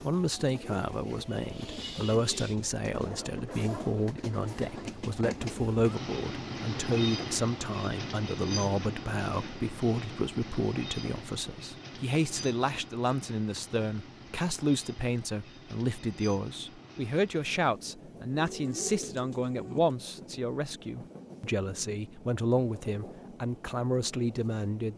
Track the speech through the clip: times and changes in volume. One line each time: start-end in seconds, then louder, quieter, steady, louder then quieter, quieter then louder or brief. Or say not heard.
0.0-24.9 steady.